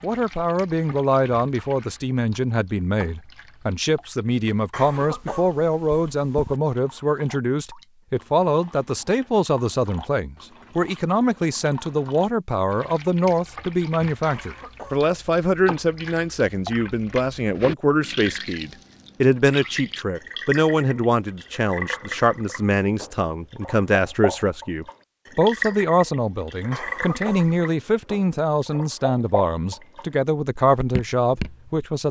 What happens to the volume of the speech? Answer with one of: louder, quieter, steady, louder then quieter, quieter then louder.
steady.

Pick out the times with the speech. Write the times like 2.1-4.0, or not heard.
0.0-32.0.